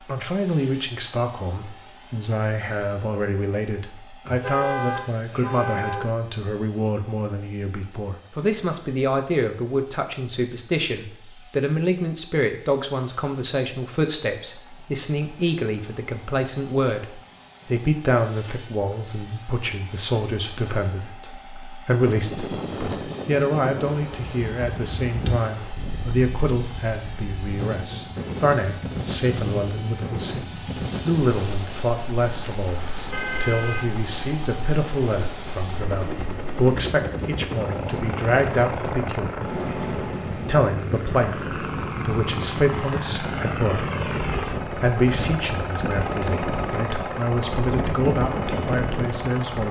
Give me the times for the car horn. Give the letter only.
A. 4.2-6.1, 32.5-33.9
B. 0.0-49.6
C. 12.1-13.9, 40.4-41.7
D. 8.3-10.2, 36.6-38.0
A.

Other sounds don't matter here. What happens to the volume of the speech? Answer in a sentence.
The loudness of the speech stays about the same.